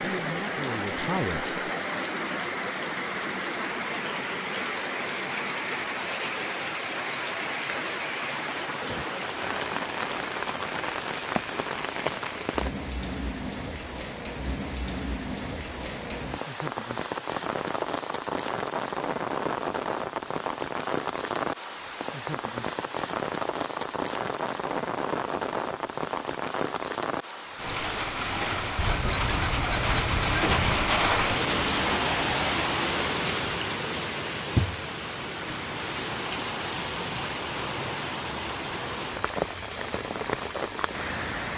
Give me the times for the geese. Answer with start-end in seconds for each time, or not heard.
28.8-30.8.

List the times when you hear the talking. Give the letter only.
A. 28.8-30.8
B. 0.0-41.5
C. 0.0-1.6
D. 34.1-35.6
C.